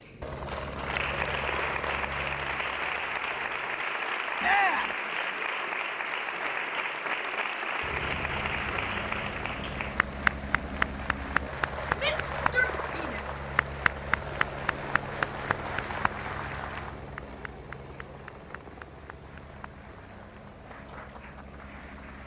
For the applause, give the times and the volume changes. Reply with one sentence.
You can hear the applause from 0.0 to 22.2 s, getting quieter.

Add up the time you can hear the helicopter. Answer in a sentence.
The helicopter can be heard for 18 seconds in total.